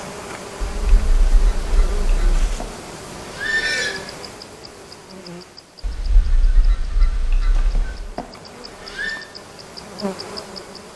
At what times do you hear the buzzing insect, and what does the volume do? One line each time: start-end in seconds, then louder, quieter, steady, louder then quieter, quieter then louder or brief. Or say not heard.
0.0-10.9 quieter then louder.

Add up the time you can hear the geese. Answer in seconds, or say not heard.
4 s.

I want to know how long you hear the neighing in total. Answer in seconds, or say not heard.
4 s.